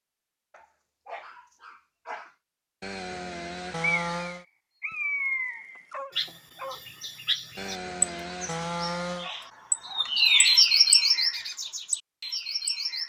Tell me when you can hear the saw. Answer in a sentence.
The saw can be heard from 2.8 to 4.5 s and from 7.5 to 9.3 s.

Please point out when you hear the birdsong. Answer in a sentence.
The birdsong can be heard from 3.8 to 13.0 s.